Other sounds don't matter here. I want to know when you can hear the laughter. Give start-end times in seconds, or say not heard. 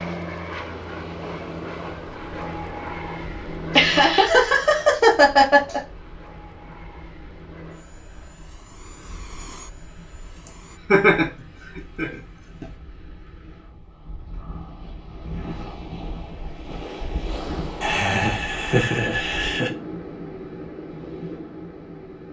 3.8-5.8, 10.4-12.7, 17.8-19.7.